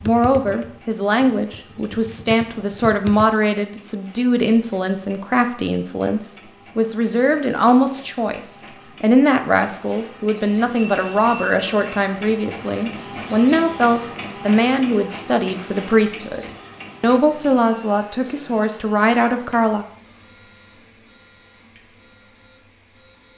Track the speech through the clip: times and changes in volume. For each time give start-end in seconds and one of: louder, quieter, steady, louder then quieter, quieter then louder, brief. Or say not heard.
0.0-19.9 steady.